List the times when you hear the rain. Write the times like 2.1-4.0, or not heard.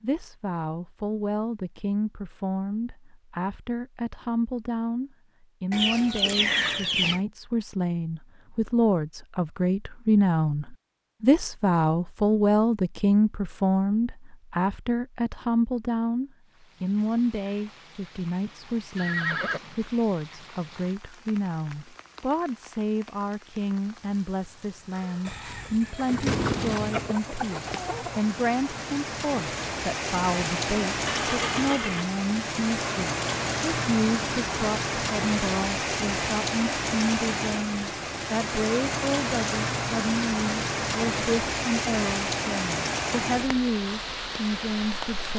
16.4-45.3.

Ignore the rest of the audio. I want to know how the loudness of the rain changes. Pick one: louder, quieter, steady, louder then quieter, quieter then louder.
louder.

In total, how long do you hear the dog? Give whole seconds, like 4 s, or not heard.
not heard.